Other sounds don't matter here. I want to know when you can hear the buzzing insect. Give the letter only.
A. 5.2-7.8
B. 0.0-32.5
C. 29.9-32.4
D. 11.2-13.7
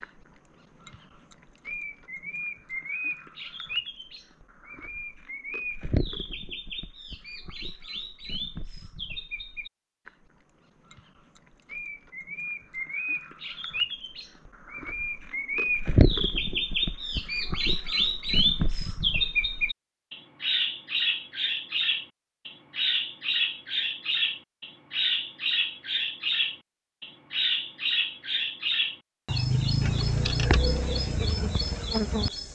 C.